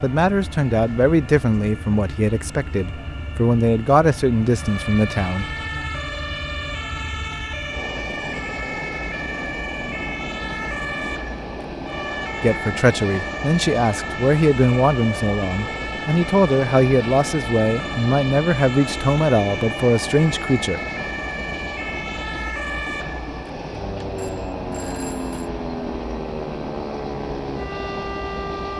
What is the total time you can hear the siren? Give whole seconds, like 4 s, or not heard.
29 s.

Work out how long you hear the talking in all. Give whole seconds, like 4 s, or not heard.
14 s.